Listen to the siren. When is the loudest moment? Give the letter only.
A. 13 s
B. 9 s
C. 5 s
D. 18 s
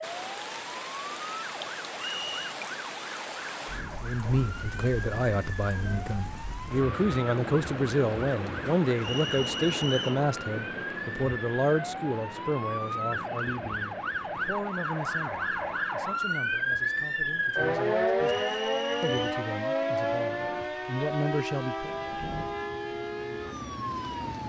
D.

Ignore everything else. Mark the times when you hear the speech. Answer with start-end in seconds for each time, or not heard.
4.0-21.9.